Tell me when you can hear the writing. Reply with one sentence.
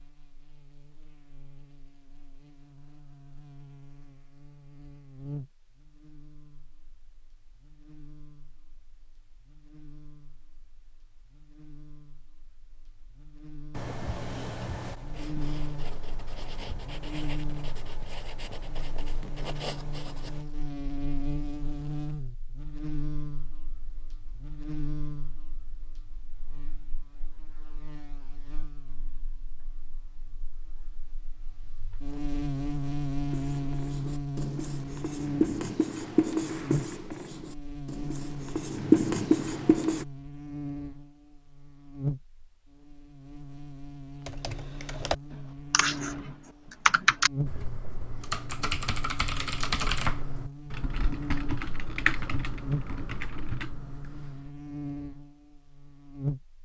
The writing can be heard from 13.8 to 20.4 s and from 33.3 to 40.0 s.